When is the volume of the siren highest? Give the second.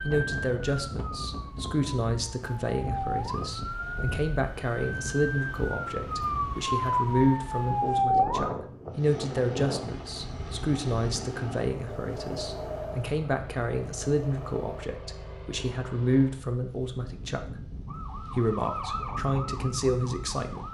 8 s.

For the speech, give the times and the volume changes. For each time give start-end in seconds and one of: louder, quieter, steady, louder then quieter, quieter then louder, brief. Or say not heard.
0.0-20.7 steady.